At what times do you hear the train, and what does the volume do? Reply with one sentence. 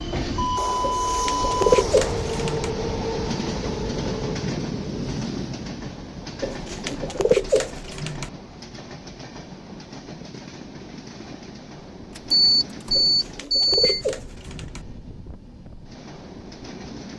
You can hear the train from 0.0 to 17.1 s, getting quieter.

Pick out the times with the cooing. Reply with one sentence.
You can hear the cooing from 0.8 to 2.7 s, from 6.4 to 8.3 s and from 12.9 to 14.8 s.